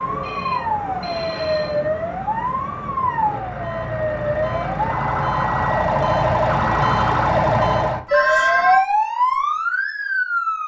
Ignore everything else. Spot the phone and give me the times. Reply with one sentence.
You can hear the phone from 0.2 to 1.8 s and from 8.1 to 8.8 s.